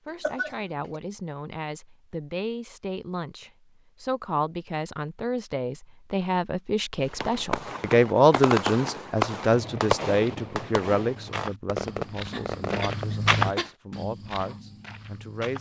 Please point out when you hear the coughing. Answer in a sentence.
The coughing can be heard from 0.1 to 1.0 s and from 12.3 to 13.7 s.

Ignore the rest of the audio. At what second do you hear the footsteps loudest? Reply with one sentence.
The volume of the footsteps peaks at 13 seconds.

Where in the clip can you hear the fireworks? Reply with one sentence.
The fireworks can be heard from 7.0 to 13.8 s.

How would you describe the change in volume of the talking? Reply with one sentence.
The volume of the talking goes up, then down.